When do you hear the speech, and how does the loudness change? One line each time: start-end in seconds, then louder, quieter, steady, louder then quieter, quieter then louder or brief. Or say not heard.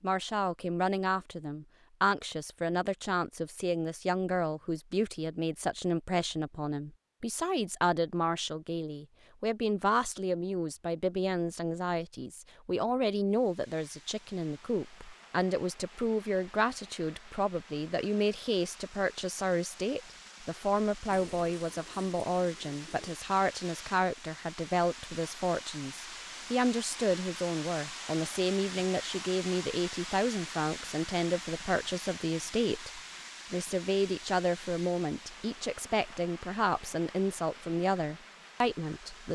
0.0-39.2 steady.